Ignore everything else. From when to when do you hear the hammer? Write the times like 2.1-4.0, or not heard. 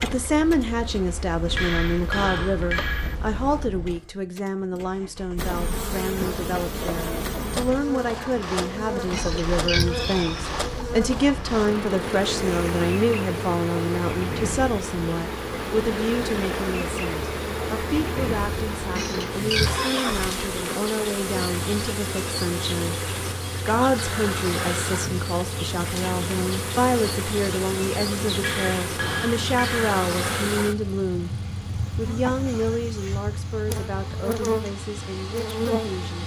1.4-3.1, 28.4-29.9.